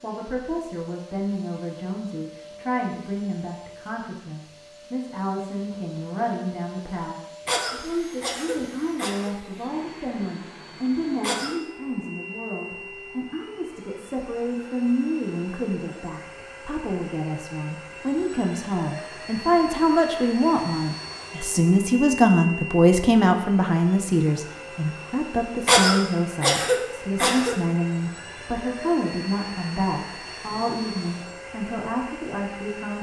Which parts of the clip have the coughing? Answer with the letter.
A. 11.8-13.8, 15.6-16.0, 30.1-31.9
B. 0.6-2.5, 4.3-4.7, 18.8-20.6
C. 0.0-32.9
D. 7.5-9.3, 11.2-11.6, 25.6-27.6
D.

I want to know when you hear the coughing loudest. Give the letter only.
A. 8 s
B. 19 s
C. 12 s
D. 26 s
D.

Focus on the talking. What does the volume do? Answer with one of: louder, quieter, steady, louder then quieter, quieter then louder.
louder then quieter.